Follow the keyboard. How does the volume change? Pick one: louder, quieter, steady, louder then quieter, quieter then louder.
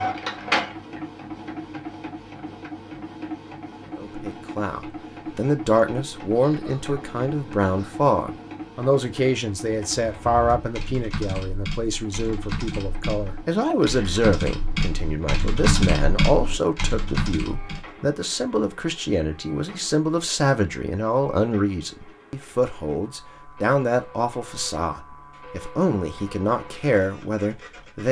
louder.